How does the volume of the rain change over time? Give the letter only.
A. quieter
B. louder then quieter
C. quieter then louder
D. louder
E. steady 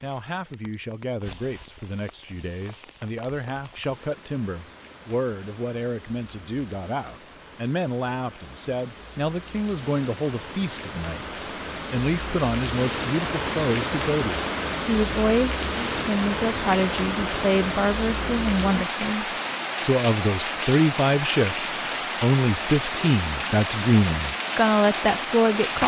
D.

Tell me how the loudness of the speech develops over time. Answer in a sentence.
The loudness of the speech goes up.